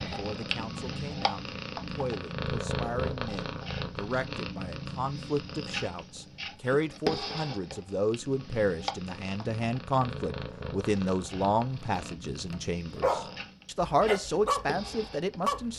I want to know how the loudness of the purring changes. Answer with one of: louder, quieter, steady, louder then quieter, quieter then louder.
quieter.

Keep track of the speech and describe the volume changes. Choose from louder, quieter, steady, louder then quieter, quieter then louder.
louder.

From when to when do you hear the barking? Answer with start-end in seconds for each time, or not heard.
11.9-15.7.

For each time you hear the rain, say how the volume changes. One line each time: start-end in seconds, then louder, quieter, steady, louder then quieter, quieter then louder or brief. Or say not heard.
not heard.